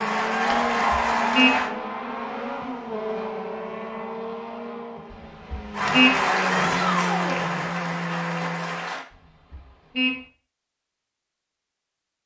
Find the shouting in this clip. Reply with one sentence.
The shouting can be heard from 6.5 to 7.5 s.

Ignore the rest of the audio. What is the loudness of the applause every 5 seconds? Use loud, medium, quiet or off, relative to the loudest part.
loud, loud, off.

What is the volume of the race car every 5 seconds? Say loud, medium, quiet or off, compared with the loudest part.
loud, loud, off.